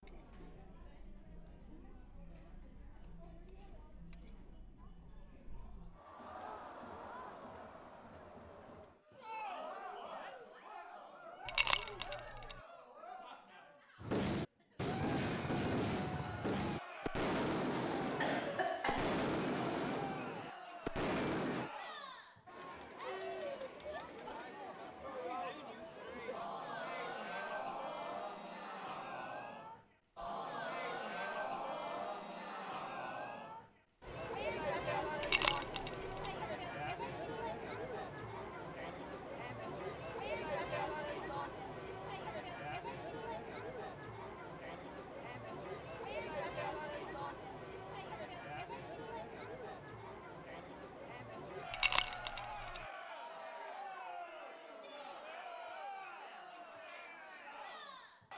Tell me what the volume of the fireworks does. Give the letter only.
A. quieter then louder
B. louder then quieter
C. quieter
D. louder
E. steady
E.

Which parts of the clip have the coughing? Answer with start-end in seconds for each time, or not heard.
17.6-19.1.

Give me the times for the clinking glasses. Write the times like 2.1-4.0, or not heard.
11.4-12.2, 35.2-35.9, 51.7-52.4.